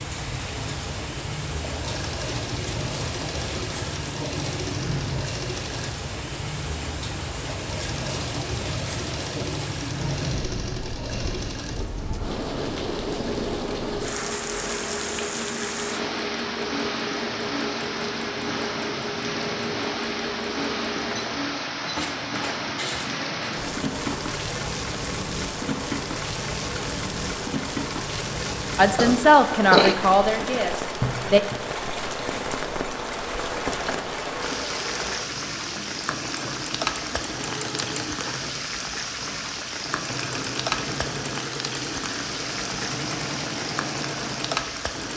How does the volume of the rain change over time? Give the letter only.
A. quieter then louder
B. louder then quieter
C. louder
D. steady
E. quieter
D.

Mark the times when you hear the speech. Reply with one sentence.
The speech can be heard from 28.8 to 31.4 s.